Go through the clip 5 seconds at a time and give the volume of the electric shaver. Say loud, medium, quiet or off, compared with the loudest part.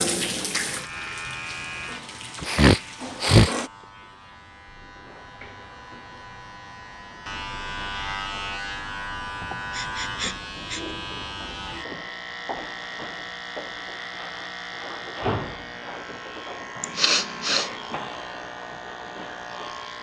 medium, loud, loud, loud.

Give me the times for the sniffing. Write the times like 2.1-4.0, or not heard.
2.4-3.5, 9.4-10.9, 16.8-17.7.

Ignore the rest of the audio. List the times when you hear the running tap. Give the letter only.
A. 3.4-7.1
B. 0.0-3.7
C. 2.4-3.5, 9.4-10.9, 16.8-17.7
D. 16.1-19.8
B.